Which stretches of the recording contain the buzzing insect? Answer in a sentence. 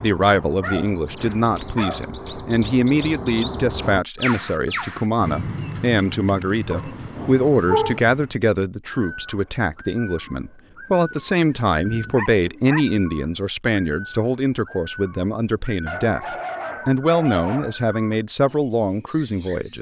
You can't hear the buzzing insect here.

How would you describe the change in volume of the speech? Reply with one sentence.
The volume of the speech stays about the same.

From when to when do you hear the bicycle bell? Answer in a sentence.
You can't hear the bicycle bell here.